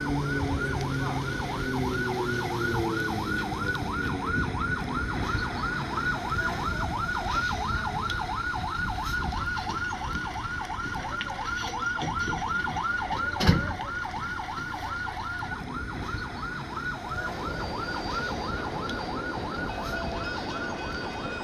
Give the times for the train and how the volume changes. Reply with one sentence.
The train can be heard from 16.9 to 21.3 s, at a steady volume.